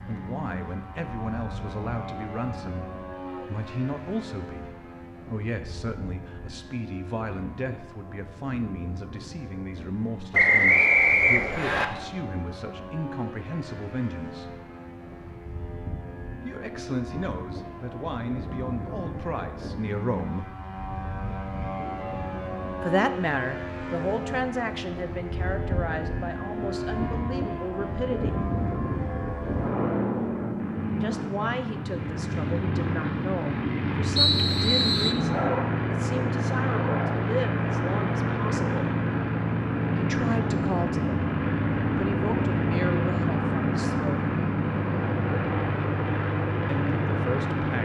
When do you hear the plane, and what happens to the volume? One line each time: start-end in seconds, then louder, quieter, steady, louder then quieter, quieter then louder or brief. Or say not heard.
0.0-47.8 louder.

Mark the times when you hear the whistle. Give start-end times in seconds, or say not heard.
10.3-11.8, 34.1-35.1.